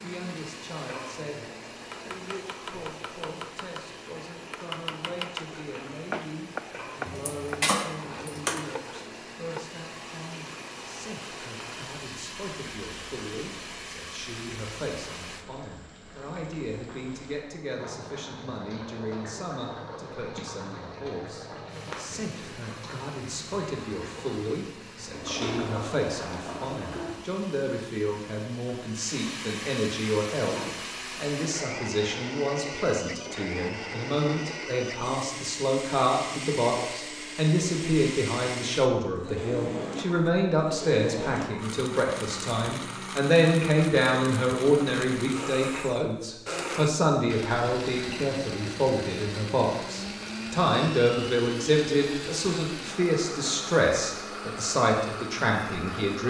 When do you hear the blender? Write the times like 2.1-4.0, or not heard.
0.0-15.4, 21.6-56.2.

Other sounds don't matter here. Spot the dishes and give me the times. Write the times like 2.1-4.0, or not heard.
7.0-8.7.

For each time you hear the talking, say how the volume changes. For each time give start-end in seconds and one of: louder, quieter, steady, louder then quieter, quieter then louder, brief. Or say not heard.
0.0-56.2 louder.